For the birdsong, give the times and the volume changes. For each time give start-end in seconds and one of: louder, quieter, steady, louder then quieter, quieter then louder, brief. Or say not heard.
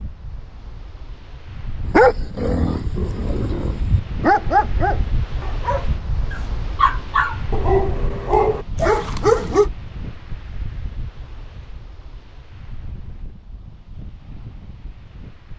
not heard.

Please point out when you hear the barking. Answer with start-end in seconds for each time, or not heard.
1.9-9.7.